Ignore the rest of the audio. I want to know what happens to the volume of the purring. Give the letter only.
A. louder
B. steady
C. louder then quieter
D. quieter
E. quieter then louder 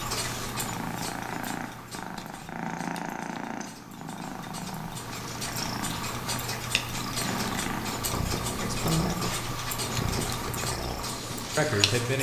B.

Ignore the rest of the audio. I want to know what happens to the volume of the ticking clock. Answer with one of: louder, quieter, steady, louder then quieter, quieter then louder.
quieter then louder.